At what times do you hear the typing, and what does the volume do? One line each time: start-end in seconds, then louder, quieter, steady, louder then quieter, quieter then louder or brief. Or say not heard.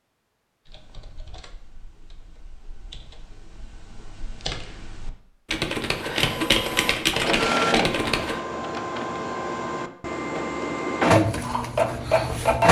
0.7-8.4 louder.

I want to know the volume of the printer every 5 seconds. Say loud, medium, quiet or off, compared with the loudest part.
off, medium, loud.